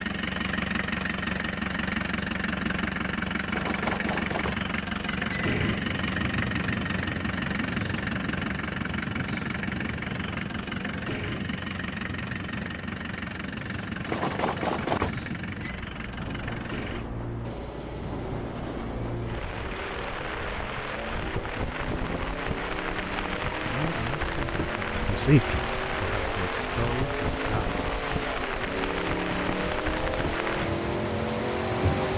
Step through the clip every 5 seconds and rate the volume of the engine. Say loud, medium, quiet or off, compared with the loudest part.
loud, loud, medium, medium, medium, loud, loud.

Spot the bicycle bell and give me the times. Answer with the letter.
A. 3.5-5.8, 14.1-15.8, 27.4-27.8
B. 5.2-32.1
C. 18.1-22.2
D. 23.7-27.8
A.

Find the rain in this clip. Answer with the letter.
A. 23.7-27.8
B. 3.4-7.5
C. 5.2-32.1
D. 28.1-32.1
C.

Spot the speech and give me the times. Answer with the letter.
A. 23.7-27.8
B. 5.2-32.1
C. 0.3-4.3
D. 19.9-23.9
A.